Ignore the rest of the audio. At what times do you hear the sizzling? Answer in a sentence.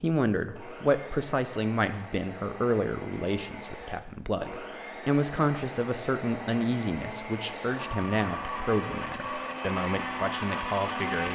You can't hear the sizzling here.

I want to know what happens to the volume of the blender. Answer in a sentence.
The loudness of the blender goes up.